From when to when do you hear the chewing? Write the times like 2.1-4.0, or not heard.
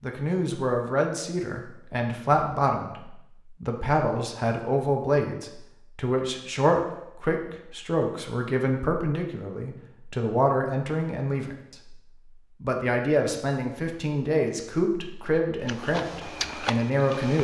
15.7-17.3.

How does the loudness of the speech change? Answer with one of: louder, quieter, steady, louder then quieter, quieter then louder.
steady.